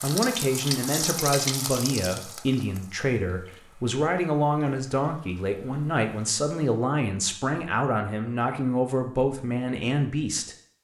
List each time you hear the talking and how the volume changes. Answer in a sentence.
The talking can be heard from 0.0 to 10.6 s, at a steady volume.